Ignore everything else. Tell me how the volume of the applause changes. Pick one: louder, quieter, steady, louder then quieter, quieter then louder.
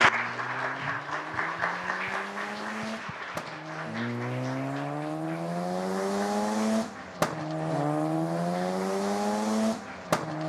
quieter.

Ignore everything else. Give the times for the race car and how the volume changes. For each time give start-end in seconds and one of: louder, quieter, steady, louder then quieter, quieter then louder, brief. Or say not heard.
0.0-10.4 louder.